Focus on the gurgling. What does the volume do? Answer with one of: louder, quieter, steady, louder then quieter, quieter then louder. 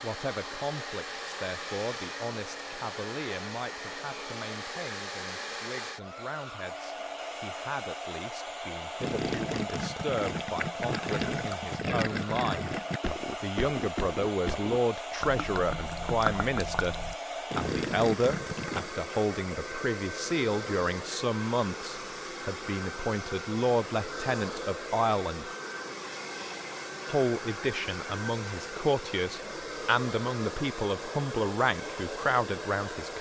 steady.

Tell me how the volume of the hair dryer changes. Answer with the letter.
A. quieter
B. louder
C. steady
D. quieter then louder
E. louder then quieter
C.